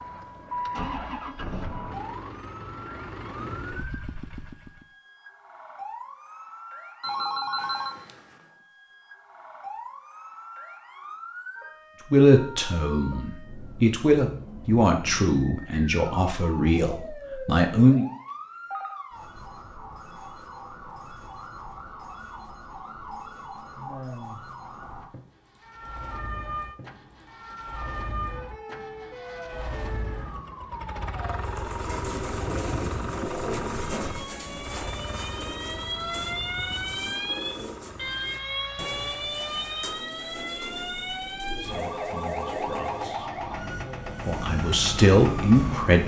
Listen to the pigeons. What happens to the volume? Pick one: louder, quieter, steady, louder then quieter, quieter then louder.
quieter.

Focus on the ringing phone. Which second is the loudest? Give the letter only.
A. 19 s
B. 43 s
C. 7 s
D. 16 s
C.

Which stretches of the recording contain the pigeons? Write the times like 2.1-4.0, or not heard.
31.4-43.2.